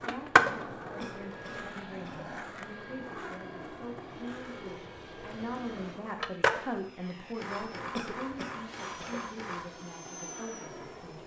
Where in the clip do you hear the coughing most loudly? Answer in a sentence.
The volume of the coughing peaks at 8 seconds.